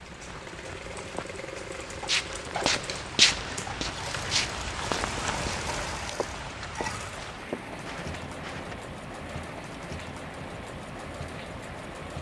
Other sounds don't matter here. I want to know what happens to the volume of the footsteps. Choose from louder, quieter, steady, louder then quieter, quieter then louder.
quieter.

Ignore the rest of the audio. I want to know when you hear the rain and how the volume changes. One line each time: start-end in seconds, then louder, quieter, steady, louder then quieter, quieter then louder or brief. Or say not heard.
0.0-12.1 louder then quieter.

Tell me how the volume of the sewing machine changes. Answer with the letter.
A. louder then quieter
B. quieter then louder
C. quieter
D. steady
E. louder
D.